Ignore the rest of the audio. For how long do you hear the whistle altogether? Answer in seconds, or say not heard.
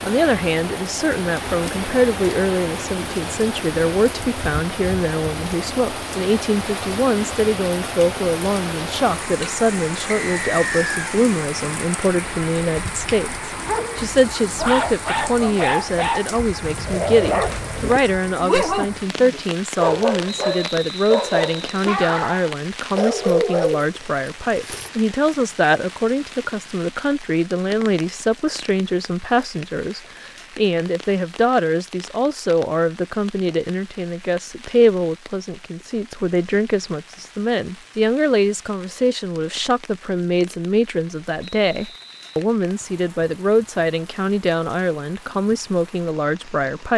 4 s.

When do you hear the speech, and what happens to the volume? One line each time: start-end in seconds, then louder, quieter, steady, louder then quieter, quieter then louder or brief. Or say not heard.
0.0-46.9 steady.